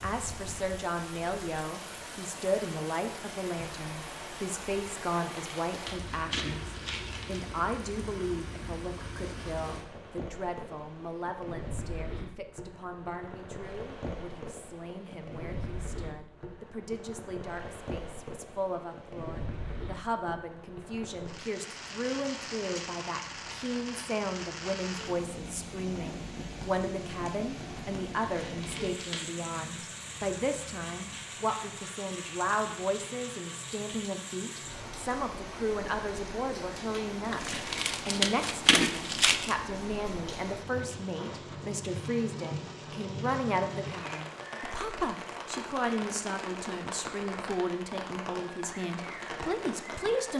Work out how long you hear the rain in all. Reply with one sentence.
The rain can be heard for 50 seconds in total.